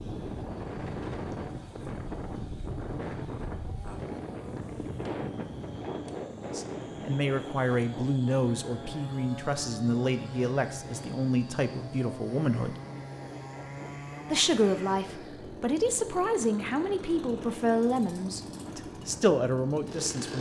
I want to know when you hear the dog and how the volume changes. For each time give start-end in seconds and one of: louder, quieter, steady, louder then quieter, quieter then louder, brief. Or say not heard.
not heard.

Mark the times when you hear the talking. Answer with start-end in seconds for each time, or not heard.
6.3-12.8, 14.3-20.3.